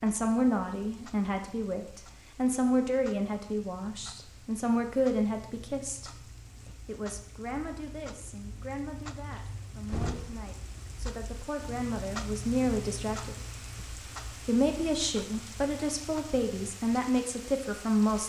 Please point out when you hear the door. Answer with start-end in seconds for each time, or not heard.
9.3-10.5.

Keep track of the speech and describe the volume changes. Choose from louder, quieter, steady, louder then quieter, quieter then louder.
quieter then louder.